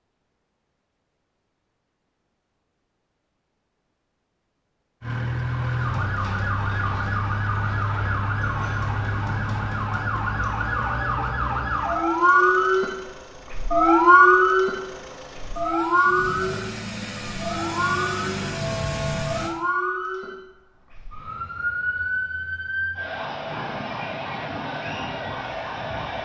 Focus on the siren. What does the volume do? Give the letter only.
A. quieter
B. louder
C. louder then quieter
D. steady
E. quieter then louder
C.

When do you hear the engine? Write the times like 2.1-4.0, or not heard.
5.0-19.6.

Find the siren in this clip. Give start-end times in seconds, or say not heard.
5.5-26.2.